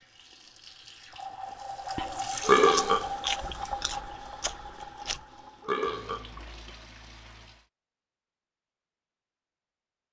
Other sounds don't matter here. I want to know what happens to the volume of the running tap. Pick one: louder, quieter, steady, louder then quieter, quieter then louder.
louder then quieter.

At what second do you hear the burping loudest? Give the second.
3 s.